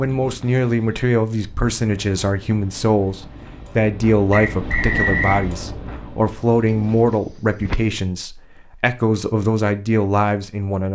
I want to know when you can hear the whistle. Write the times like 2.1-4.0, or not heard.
4.3-5.5.